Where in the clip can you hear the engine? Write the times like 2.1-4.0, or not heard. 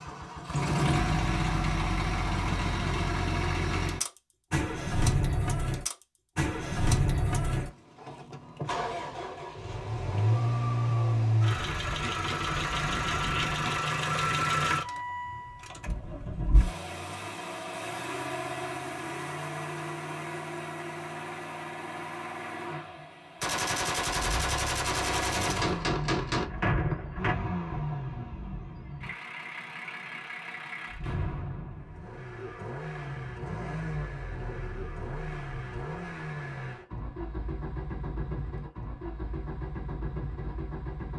0.0-41.1.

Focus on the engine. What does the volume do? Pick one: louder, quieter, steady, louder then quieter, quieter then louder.
quieter.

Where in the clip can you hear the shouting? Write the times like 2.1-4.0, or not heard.
not heard.